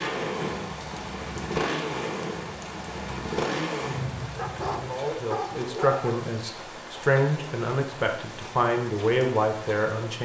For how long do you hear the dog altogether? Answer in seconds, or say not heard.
2 s.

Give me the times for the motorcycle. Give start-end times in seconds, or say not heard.
0.0-5.0.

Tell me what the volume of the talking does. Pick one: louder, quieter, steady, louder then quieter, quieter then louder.
quieter then louder.